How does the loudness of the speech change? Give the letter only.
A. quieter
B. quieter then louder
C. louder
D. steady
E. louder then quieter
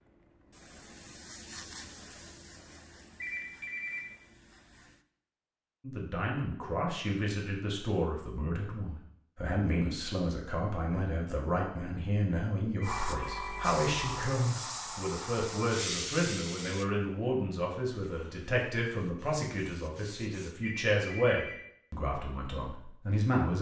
D.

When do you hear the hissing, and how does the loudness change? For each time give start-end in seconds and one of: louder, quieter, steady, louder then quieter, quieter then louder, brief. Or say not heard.
0.0-5.0 louder then quieter
12.8-20.6 quieter then louder.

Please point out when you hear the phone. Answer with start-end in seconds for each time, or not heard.
3.1-4.0, 12.8-13.8, 20.6-21.6.